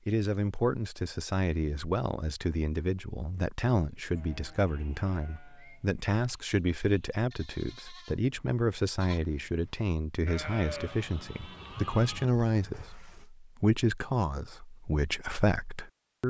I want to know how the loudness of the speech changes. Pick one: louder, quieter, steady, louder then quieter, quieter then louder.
steady.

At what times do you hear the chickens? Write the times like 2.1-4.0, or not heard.
not heard.